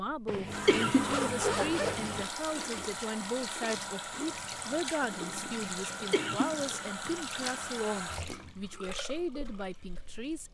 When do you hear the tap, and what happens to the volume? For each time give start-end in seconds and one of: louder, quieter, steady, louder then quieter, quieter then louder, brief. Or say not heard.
0.0-10.4 quieter.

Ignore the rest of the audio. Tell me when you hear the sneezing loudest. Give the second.
1 s.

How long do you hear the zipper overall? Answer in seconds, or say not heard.
2 s.